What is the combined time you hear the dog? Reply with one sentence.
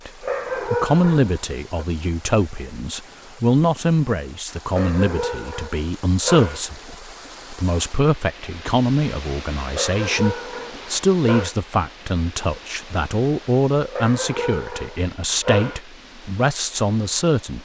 The dog can be heard for 7 seconds in total.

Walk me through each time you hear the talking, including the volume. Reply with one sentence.
You can hear the talking from 0.1 to 17.6 s, at a steady volume.